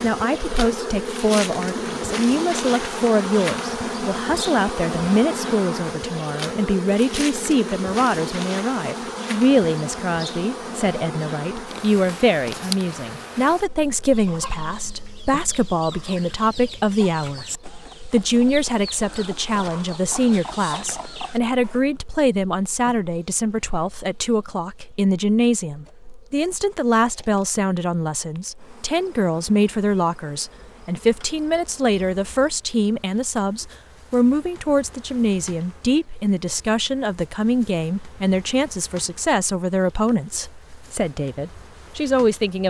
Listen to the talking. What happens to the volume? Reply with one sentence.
The loudness of the talking stays about the same.